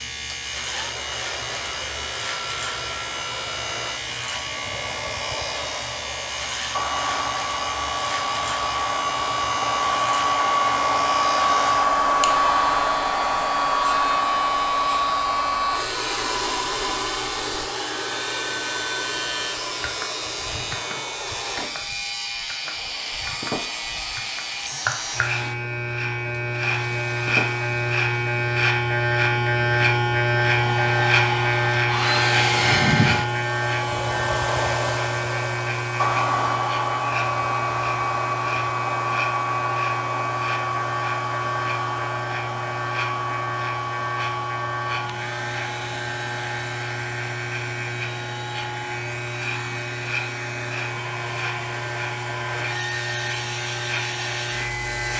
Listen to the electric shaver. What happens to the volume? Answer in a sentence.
The volume of the electric shaver goes up, then down.